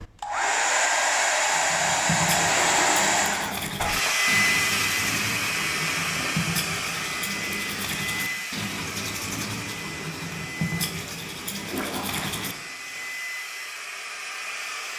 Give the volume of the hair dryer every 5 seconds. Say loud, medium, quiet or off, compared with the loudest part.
loud, medium, quiet.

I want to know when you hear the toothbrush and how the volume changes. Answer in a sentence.
The toothbrush can be heard from 1.5 to 12.9 s, at a steady volume.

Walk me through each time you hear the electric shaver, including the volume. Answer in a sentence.
The electric shaver can't be heard in this clip.